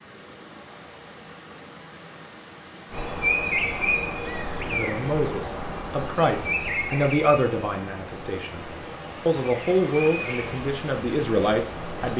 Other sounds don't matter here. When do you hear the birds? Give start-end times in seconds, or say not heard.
2.9-12.1.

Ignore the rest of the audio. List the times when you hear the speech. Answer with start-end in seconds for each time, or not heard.
4.7-12.1.